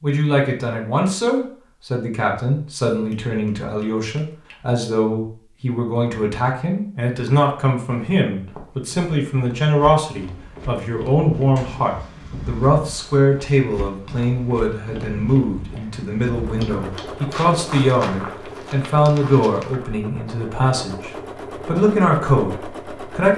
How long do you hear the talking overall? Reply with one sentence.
You can hear the talking for 23 seconds altogether.